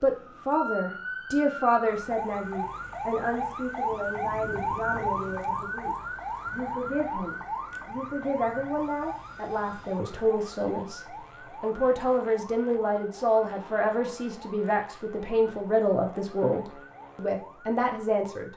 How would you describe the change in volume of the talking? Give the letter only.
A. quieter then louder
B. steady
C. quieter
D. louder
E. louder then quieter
A.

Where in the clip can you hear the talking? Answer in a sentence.
The talking can be heard from 0.0 to 18.5 s.